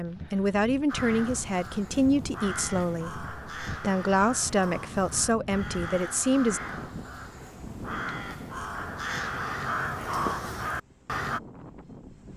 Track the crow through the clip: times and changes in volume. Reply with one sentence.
You can hear the crow from 0.8 to 11.4 s, getting louder.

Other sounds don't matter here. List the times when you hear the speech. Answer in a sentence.
You can hear the speech from 0.0 to 6.6 s.